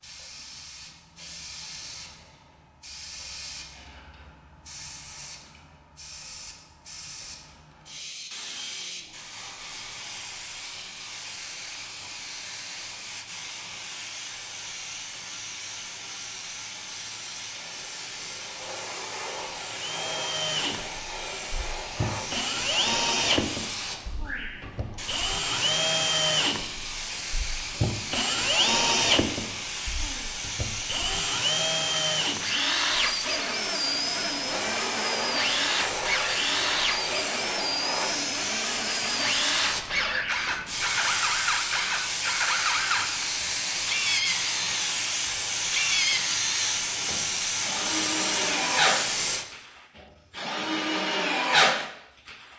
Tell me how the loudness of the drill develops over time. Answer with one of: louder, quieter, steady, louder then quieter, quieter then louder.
steady.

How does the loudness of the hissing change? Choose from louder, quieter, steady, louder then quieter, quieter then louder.
louder.